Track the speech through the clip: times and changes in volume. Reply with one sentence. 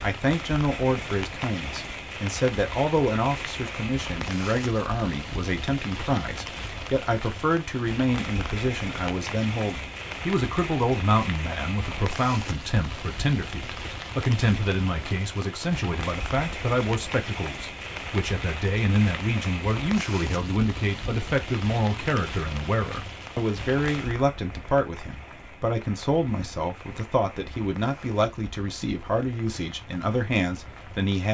You can hear the speech from 0.0 to 31.2 s, at a steady volume.